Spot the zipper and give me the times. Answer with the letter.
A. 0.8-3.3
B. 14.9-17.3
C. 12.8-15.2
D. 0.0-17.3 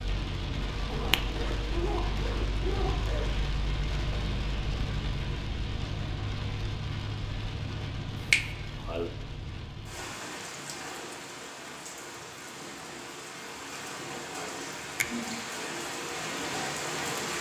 A.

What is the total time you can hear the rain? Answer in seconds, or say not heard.
17 s.